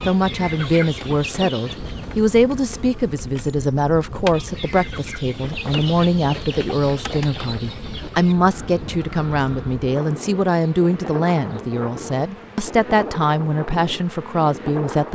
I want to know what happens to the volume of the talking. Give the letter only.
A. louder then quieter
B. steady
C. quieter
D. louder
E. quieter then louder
B.